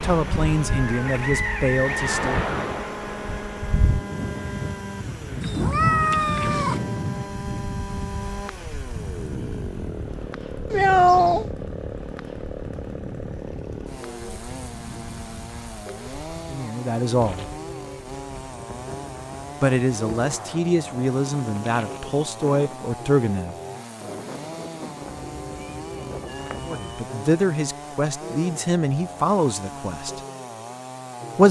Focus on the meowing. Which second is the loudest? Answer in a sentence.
The loudest moment of the meowing is at 11 seconds.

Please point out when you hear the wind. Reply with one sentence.
The wind can be heard from 0.0 to 26.8 s.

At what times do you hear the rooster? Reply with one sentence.
You can hear the rooster from 0.7 to 2.4 s.